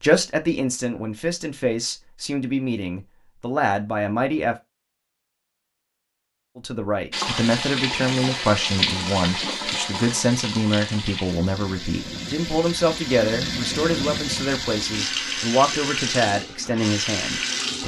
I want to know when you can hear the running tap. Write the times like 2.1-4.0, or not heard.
7.1-17.8.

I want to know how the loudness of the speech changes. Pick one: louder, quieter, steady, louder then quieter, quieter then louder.
steady.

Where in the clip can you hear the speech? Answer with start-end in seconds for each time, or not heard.
0.0-4.5, 6.5-17.8.